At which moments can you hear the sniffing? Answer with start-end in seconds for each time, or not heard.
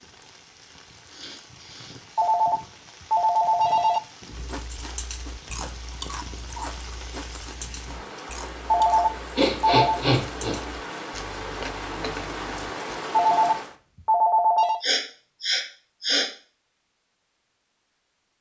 1.1-2.0, 9.3-10.6, 14.8-16.3.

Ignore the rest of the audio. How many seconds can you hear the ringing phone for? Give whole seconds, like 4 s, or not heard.
5 s.